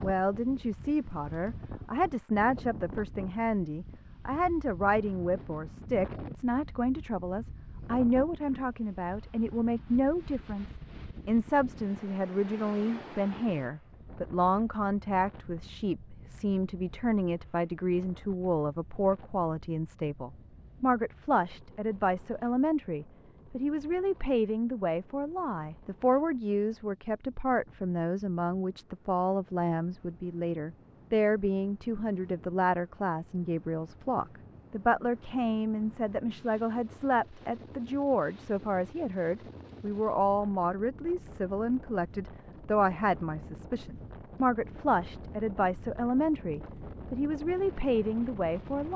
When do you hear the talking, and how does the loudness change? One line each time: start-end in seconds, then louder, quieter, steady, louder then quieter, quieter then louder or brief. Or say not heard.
0.0-10.7 steady
11.2-48.9 steady.